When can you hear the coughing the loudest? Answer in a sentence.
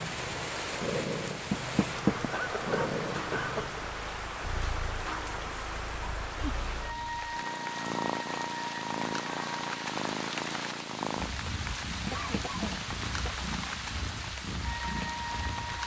The loudest moment of the coughing is at 3 seconds.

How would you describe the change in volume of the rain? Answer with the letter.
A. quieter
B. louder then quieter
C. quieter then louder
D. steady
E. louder
D.